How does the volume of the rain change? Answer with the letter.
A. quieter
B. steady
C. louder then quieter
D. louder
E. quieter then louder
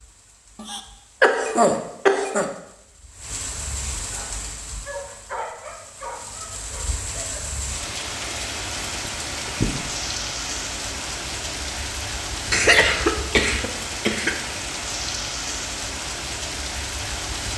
D.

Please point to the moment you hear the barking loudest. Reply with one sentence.
The volume of the barking peaks at 5 seconds.